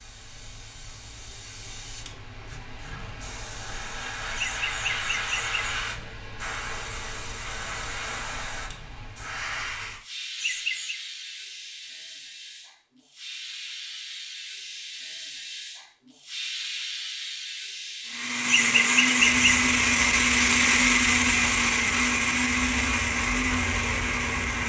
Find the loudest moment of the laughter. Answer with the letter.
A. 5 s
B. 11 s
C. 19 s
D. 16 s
C.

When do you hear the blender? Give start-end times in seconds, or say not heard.
18.1-24.6.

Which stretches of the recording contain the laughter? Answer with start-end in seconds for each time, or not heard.
4.3-5.6, 10.3-11.0, 18.4-19.6.